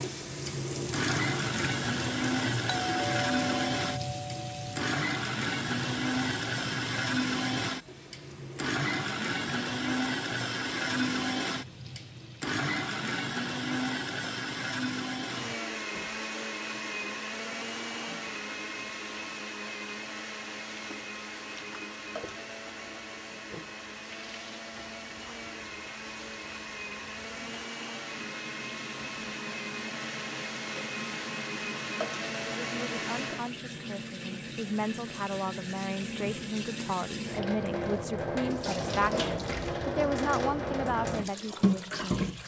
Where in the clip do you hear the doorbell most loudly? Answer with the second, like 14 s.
3 s.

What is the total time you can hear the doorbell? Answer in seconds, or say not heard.
2 s.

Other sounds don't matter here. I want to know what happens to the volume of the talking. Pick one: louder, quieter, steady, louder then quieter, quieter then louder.
louder.